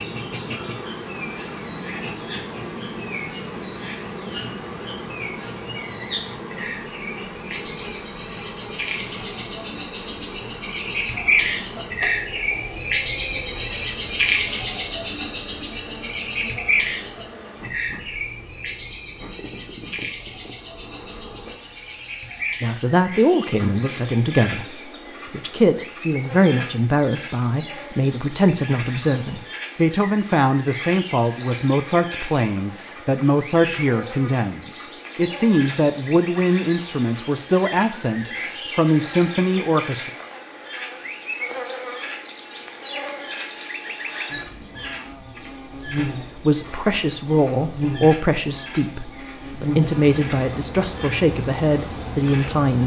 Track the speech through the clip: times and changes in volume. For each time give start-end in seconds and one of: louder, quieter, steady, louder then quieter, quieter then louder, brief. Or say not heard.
22.6-40.1 steady
46.0-52.8 steady.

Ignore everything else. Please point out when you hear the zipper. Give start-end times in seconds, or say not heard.
not heard.